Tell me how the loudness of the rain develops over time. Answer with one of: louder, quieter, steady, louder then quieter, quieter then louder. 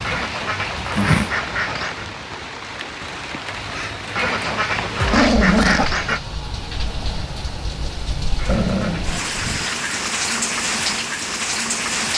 louder.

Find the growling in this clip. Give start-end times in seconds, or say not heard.
0.8-1.4, 5.0-5.9, 8.4-9.7.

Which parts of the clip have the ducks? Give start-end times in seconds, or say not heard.
0.0-2.1, 4.2-6.2, 8.3-10.4.